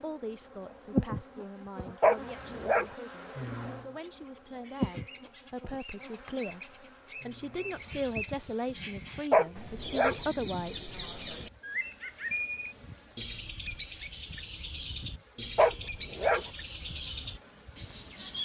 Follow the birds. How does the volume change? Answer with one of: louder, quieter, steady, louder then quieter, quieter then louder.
louder.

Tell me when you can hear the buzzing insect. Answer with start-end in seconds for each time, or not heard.
0.0-18.3.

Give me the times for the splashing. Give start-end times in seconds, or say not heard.
not heard.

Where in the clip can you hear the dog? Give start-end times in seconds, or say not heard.
2.0-2.9, 9.3-10.2, 15.6-16.4.